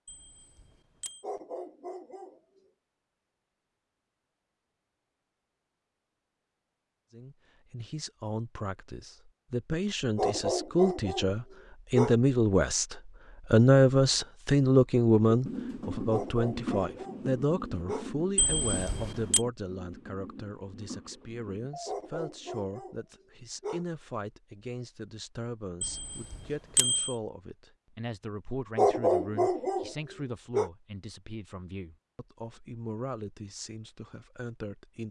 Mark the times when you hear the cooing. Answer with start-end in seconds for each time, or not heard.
15.2-22.0.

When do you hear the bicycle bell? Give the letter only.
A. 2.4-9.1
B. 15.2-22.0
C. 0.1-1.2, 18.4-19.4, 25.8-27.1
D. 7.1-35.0
C.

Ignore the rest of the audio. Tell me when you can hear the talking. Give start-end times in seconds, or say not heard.
7.1-35.0.